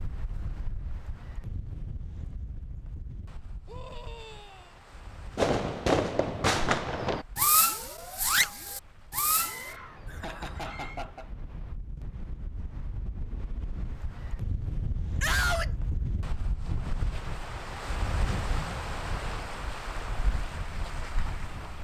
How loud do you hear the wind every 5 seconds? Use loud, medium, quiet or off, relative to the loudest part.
medium, quiet, medium, loud, loud.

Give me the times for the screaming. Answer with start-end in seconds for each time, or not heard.
3.6-4.8, 9.3-11.1, 15.2-15.7.